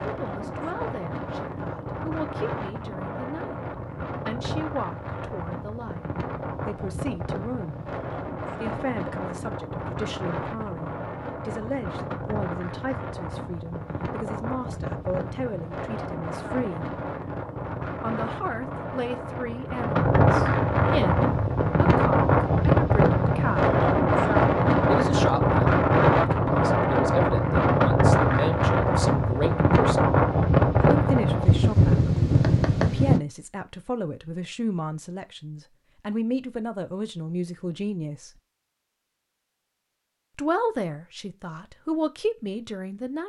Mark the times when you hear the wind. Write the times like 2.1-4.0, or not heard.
0.0-33.2.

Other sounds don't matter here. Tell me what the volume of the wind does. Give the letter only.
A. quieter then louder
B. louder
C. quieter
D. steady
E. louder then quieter
B.